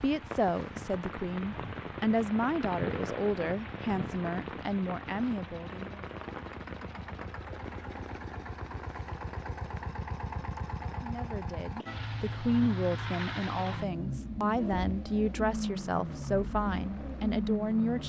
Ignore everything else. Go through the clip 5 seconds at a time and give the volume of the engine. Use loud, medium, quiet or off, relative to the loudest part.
quiet, medium, loud, loud.